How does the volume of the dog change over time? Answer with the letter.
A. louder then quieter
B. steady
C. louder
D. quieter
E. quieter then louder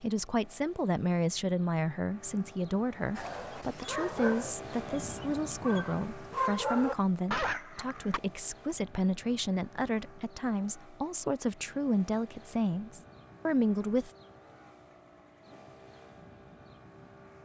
E.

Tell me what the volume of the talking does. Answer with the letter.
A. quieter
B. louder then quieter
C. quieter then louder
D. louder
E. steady
E.